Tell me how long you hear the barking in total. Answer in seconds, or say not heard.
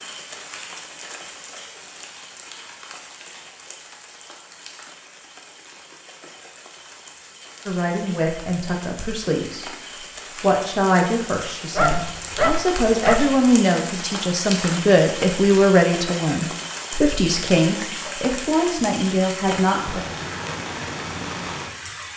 2 s.